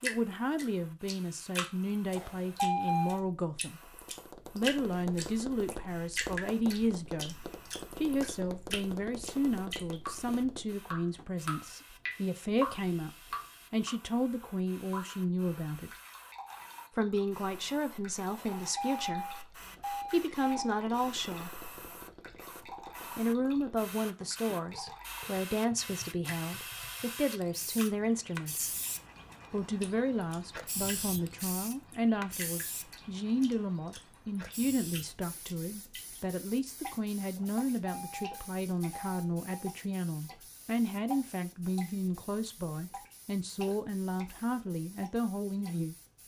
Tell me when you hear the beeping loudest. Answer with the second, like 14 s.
3 s.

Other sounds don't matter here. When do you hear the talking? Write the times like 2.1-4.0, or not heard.
0.0-3.9, 4.5-7.3, 8.0-15.9, 16.9-21.7, 23.1-28.7, 29.5-46.0.